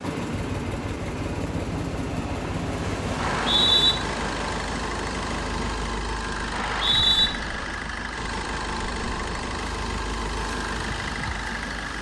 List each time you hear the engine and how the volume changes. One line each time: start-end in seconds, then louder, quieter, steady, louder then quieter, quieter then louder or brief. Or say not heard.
0.0-11.9 steady.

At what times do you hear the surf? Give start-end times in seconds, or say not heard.
0.0-11.9.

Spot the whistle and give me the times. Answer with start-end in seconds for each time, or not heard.
3.1-4.0, 6.5-7.3.